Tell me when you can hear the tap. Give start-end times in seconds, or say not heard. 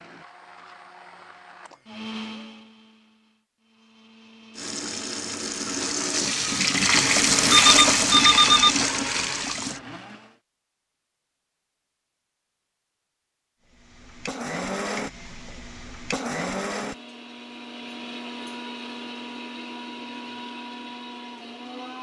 4.5-9.8.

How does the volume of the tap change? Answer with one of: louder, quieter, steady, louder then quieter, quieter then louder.
louder then quieter.